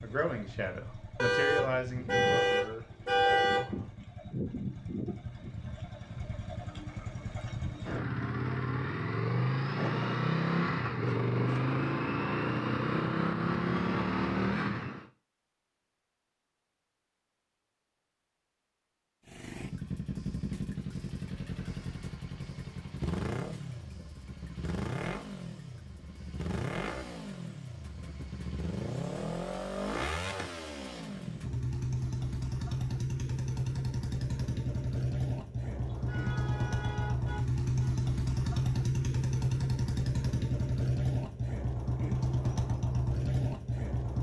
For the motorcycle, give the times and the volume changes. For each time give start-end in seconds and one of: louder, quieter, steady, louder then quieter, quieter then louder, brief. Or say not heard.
0.0-15.1 louder
19.2-44.1 louder.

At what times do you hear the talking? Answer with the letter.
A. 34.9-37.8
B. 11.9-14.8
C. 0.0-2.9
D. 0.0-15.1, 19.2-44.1
C.